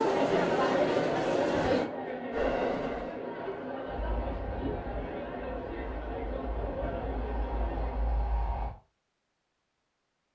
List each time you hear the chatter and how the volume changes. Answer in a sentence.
You can hear the chatter from 0.0 to 8.2 s, getting quieter.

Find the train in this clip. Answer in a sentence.
You can hear the train from 2.3 to 8.8 s.